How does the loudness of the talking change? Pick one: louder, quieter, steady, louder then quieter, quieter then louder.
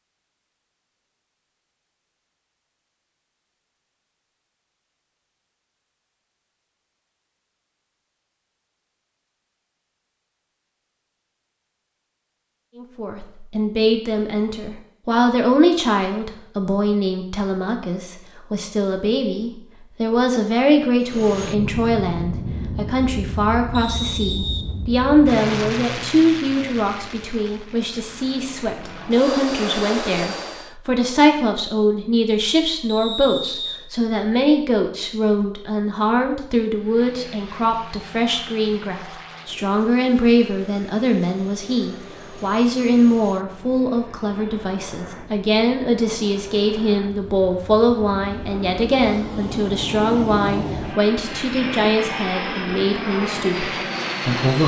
steady.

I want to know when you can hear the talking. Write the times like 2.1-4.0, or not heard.
12.8-54.6.